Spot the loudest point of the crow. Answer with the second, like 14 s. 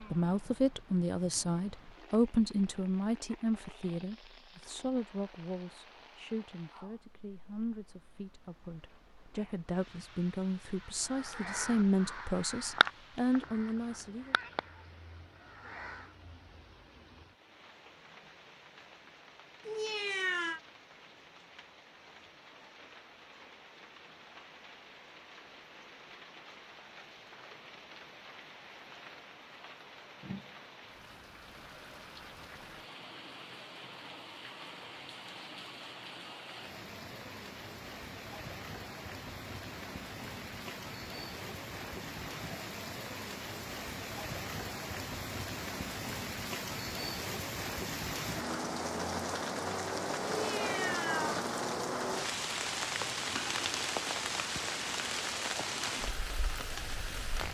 13 s.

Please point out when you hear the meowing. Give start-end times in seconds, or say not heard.
19.6-20.6, 50.3-51.4.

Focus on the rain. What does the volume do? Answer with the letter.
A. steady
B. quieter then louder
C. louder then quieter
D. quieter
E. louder
E.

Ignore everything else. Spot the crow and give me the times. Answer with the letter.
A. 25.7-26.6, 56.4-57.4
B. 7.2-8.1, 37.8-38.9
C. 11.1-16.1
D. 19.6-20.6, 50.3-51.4
C.